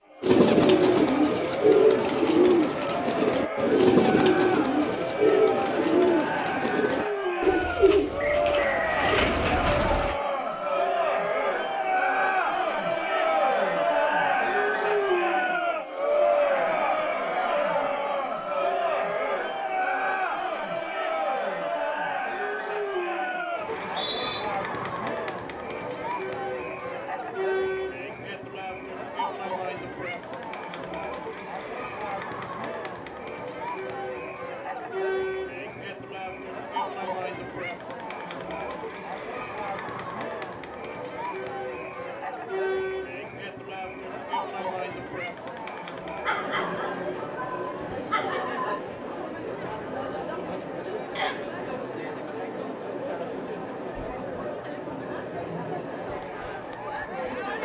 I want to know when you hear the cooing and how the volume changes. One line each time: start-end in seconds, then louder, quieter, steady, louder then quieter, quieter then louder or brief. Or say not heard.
0.2-10.2 quieter.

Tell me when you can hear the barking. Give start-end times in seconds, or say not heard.
46.2-48.8.